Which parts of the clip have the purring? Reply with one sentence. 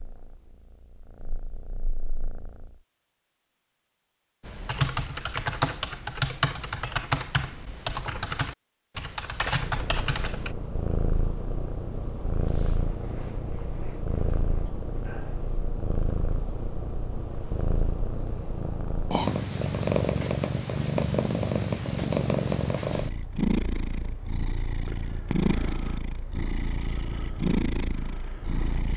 You can hear the purring from 0.0 to 2.8 s and from 9.6 to 28.9 s.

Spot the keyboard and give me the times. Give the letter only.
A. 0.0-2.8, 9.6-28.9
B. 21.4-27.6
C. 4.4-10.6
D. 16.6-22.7
C.